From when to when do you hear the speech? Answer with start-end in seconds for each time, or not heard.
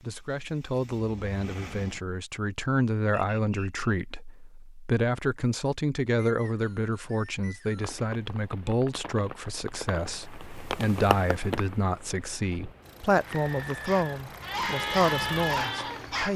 0.0-16.3.